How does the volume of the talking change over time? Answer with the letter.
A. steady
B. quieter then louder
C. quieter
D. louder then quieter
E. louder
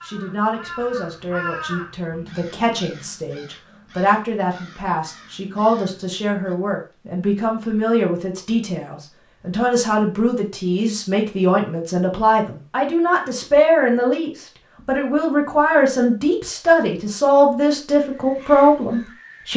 E.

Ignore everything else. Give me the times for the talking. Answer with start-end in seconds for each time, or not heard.
0.0-19.5.